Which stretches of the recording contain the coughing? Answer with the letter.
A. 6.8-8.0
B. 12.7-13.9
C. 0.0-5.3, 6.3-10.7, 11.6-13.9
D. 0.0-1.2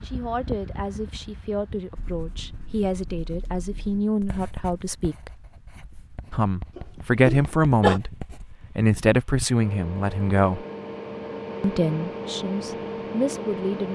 A.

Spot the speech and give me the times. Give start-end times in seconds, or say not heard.
0.0-5.3, 6.3-10.7, 11.6-13.9.